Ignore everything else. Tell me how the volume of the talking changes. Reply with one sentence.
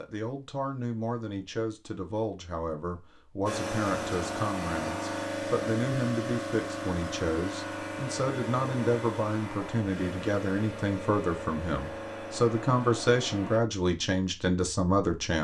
The loudness of the talking goes up.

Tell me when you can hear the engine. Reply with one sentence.
You can hear the engine from 3.5 to 13.6 s.